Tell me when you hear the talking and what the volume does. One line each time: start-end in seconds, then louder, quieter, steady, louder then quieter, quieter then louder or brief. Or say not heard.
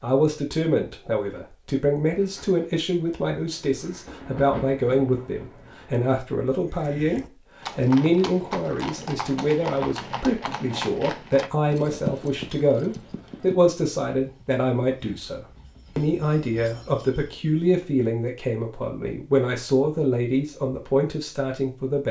0.0-22.0 steady.